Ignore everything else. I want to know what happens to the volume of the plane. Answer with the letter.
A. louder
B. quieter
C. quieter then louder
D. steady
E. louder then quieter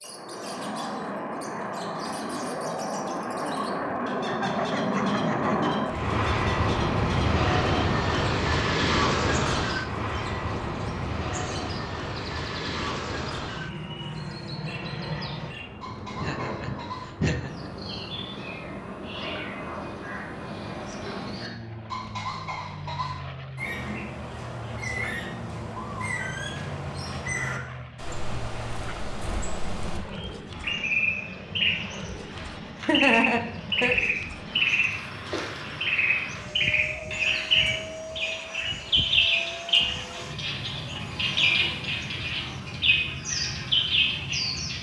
B.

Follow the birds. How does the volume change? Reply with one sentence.
The loudness of the birds goes up.